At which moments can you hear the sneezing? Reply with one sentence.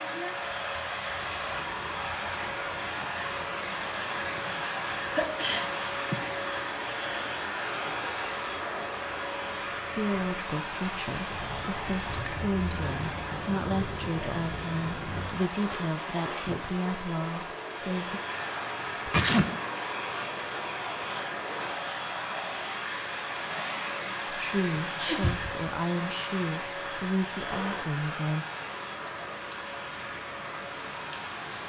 The sneezing can be heard from 5.0 to 6.2 s, from 18.8 to 19.4 s and from 24.9 to 25.5 s.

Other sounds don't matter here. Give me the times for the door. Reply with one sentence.
The door can't be heard in this clip.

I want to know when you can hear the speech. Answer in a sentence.
The speech can be heard from 9.9 to 18.2 s and from 24.3 to 28.4 s.